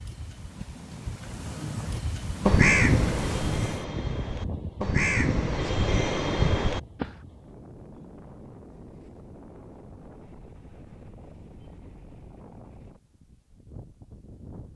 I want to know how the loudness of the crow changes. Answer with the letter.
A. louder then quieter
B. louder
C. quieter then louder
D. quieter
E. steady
C.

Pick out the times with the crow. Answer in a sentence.
The crow can be heard from 1.9 to 7.1 s.